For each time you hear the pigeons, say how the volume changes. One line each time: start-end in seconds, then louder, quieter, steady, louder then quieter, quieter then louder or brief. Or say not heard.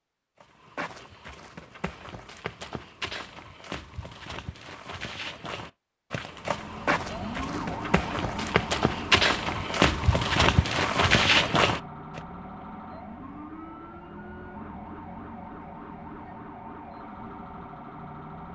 not heard.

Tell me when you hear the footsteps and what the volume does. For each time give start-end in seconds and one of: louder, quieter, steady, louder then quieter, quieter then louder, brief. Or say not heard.
0.4-12.2 louder.